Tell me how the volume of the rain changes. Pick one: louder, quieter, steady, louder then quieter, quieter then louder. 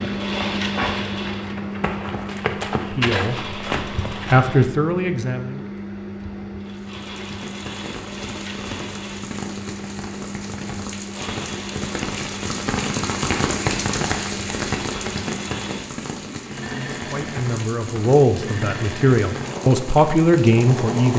louder then quieter.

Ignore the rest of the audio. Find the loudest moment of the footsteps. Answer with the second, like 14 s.
3 s.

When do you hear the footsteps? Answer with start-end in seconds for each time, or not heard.
0.0-4.5.